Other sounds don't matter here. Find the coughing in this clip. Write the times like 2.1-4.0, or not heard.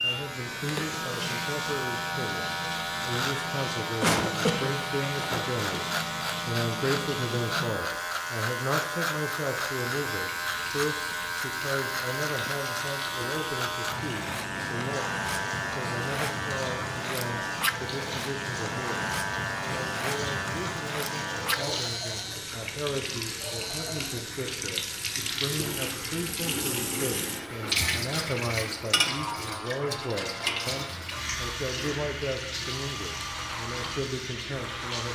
4.0-5.9.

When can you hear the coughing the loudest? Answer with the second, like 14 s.
4 s.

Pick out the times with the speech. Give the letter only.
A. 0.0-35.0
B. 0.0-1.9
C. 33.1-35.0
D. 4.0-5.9
A.